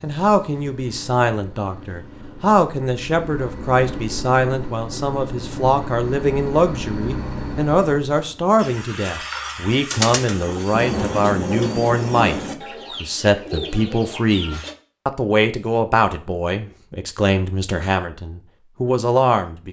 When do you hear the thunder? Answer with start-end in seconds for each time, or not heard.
10.7-12.6.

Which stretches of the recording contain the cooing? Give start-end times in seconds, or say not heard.
8.6-14.8.